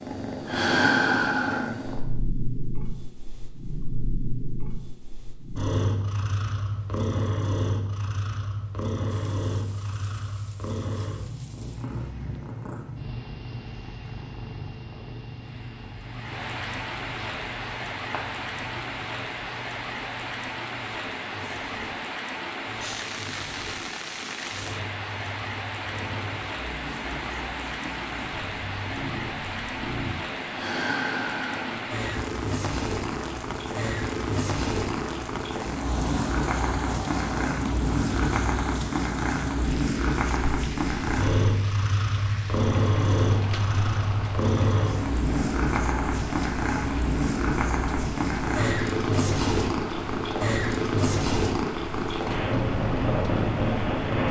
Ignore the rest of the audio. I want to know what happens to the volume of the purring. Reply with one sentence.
The loudness of the purring goes down, then up.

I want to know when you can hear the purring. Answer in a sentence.
You can hear the purring from 0.0 to 54.2 s.